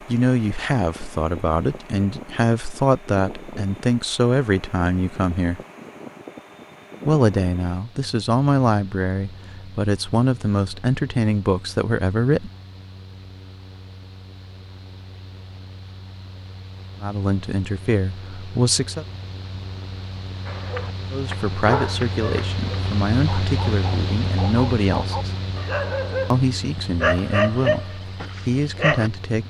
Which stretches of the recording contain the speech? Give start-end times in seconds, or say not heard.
0.1-5.6, 7.0-12.5, 17.0-19.1, 21.1-25.4, 26.3-29.4.